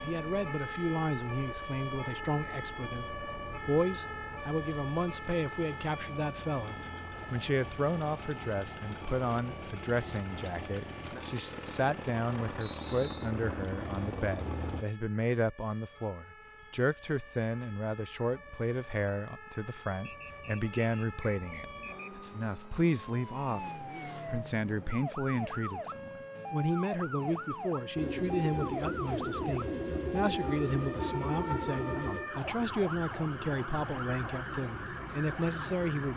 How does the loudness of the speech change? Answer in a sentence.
The volume of the speech stays about the same.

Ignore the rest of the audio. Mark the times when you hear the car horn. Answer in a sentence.
The car horn can't be heard in this clip.